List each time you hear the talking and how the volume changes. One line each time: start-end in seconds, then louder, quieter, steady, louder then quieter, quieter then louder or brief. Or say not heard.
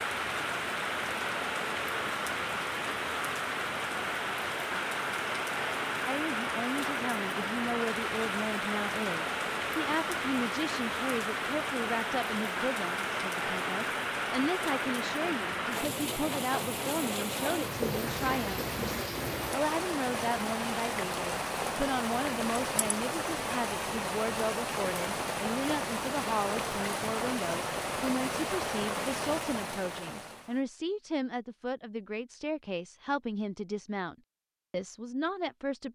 6.0-18.7 steady
19.5-35.8 steady.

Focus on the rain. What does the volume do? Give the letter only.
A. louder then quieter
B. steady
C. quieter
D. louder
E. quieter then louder
B.